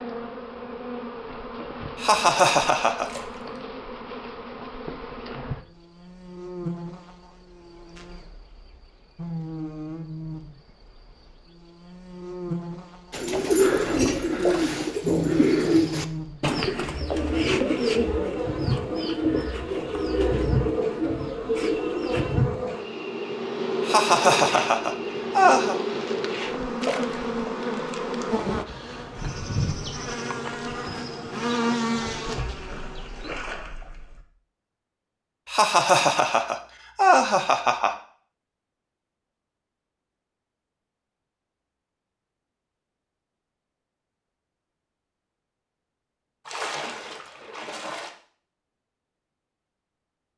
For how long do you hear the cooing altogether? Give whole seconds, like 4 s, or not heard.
9 s.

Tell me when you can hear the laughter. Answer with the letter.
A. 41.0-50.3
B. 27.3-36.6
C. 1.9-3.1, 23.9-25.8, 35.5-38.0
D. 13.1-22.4
C.